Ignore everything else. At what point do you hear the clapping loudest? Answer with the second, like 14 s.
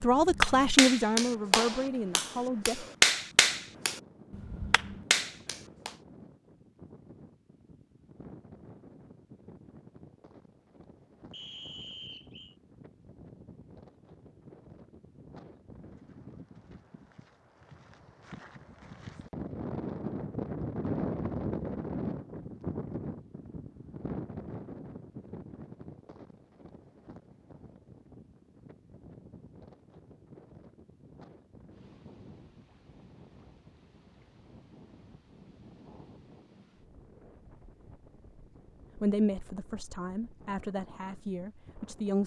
3 s.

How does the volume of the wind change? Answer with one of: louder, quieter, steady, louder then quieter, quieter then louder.
louder then quieter.